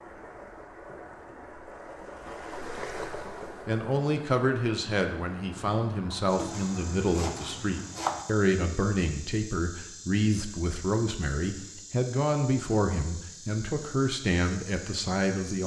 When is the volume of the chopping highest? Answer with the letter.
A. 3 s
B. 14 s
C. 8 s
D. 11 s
C.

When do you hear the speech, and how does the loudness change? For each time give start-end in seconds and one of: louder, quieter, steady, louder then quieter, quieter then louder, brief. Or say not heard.
3.6-15.6 steady.